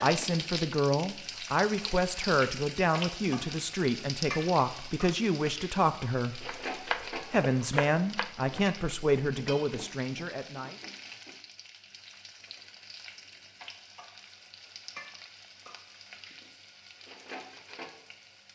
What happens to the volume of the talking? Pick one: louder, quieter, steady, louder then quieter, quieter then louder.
steady.